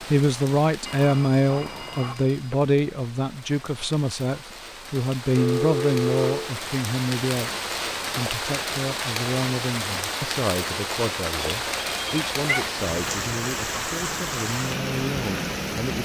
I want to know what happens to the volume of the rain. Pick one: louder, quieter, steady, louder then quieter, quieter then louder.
louder.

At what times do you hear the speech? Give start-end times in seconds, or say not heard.
0.1-16.0.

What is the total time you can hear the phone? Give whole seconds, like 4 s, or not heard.
4 s.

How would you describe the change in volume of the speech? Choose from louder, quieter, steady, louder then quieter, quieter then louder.
quieter.